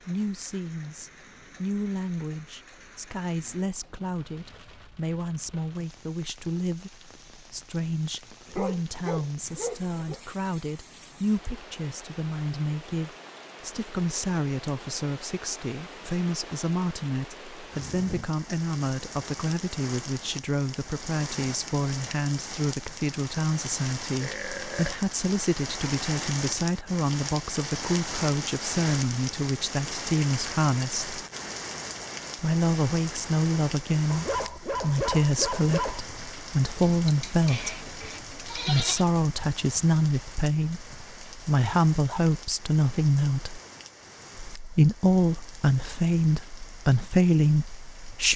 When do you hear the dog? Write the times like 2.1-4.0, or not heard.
8.4-10.2, 34.1-36.0.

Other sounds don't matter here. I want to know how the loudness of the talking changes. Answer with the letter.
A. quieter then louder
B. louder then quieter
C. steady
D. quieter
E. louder
E.